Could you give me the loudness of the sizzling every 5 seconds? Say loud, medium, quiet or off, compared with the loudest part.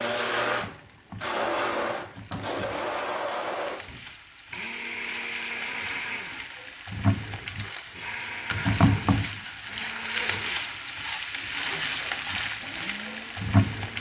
quiet, loud, loud.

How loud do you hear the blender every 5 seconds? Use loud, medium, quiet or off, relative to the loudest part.
loud, medium, quiet.